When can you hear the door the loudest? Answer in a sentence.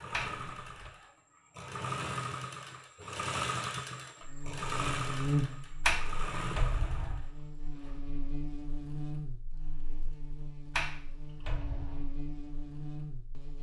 The volume of the door peaks at 6 seconds.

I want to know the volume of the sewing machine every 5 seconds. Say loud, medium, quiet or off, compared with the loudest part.
loud, loud, off.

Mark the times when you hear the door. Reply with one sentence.
You can hear the door from 0.1 to 0.9 s, from 5.8 to 7.2 s and from 10.7 to 12.1 s.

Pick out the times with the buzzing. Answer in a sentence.
You can hear the buzzing from 4.2 to 13.5 s.